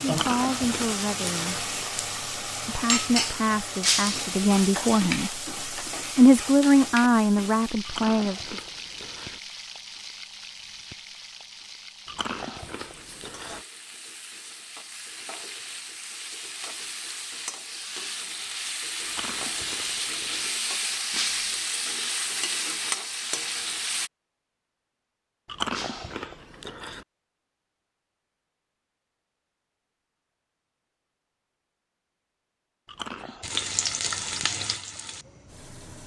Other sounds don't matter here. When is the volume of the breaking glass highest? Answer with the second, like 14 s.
4 s.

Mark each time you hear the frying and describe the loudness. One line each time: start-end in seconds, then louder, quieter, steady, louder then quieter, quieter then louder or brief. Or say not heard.
0.0-24.1 quieter then louder
33.4-36.0 brief.